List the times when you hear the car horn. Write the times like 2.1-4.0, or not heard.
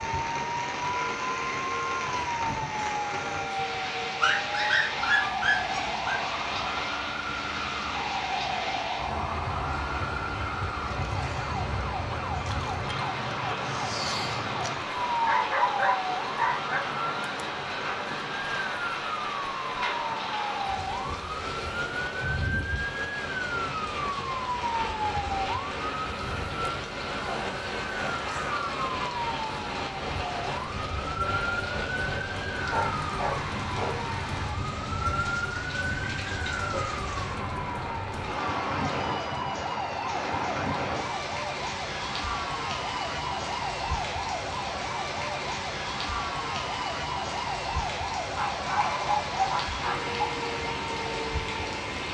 not heard.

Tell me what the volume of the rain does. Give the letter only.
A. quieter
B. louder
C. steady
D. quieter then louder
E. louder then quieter
C.